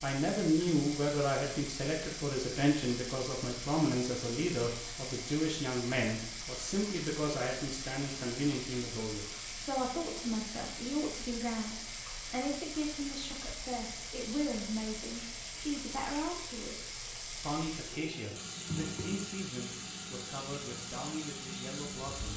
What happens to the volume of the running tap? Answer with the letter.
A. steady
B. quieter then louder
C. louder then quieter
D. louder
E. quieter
A.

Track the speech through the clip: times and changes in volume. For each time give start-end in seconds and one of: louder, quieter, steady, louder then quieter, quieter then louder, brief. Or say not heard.
0.0-22.3 quieter.